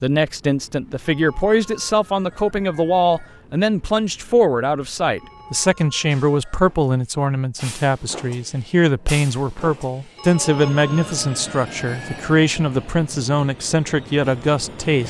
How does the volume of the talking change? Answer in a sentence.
The loudness of the talking stays about the same.